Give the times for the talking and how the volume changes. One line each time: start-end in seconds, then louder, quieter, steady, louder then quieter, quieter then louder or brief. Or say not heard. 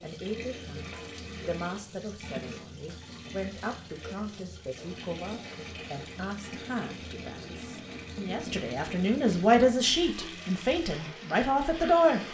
0.0-12.2 louder.